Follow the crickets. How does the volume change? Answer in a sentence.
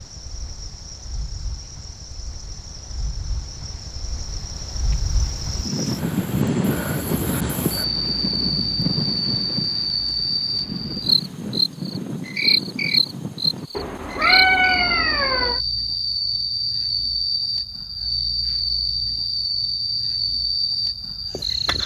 The loudness of the crickets goes up.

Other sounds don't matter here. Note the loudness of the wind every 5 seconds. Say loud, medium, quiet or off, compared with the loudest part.
quiet, loud, medium, off, off.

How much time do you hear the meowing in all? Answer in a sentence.
The meowing can be heard for 2 seconds in total.